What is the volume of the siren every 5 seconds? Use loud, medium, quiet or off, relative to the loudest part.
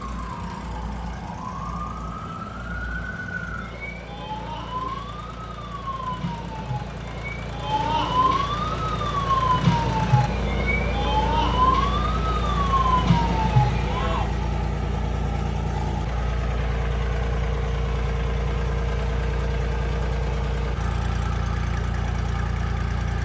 medium, loud, loud, off, off.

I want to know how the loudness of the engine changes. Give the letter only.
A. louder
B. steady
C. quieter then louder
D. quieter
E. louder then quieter
A.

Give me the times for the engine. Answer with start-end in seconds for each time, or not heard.
0.0-23.2.